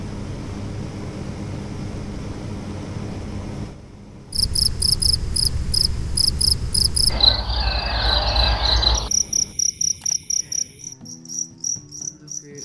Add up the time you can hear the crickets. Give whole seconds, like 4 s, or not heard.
8 s.